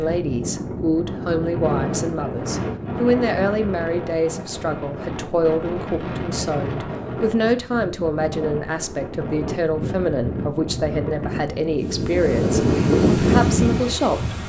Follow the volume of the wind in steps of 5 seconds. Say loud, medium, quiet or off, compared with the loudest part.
medium, medium, loud.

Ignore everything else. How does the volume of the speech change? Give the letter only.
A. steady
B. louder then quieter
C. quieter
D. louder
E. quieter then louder
A.